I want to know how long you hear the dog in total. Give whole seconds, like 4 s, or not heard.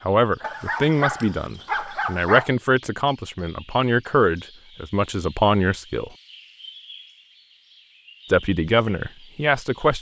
2 s.